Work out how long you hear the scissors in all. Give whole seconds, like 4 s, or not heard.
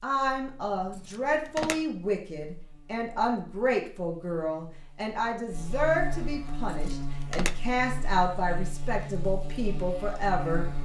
2 s.